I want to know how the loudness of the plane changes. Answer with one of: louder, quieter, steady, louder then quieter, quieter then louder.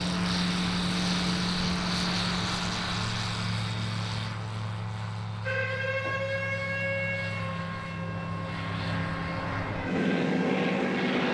quieter then louder.